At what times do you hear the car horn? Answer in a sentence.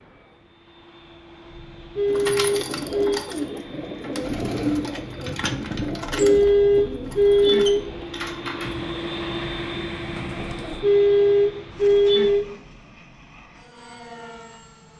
The car horn can be heard from 1.5 to 3.2 s, from 6.0 to 7.9 s and from 10.6 to 12.4 s.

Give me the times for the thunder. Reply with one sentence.
The thunder can be heard from 8.6 to 10.7 s.